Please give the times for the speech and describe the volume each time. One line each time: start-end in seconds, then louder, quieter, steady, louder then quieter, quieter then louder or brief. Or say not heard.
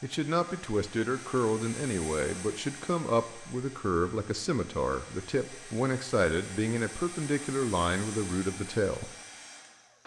0.0-9.1 steady.